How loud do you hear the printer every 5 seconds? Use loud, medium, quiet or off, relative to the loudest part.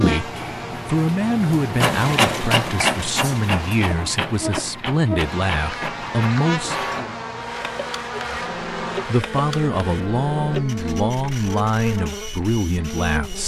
loud, medium, medium.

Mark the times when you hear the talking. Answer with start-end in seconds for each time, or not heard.
0.0-7.2, 8.2-13.4.